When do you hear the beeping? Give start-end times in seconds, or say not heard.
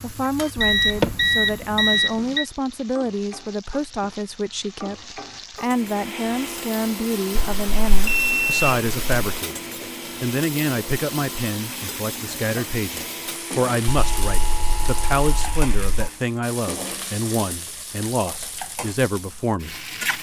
0.6-2.5, 7.3-9.4, 13.8-16.1.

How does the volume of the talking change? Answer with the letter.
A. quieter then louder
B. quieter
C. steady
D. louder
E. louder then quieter
C.